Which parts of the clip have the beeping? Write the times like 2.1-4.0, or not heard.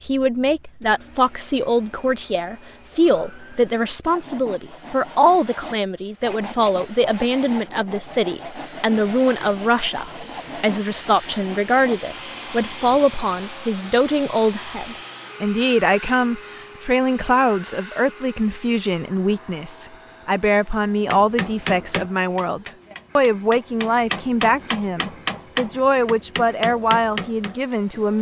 not heard.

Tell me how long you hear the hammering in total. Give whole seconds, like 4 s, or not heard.
7 s.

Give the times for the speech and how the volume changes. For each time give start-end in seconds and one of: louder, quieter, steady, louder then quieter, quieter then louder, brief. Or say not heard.
0.1-28.1 steady.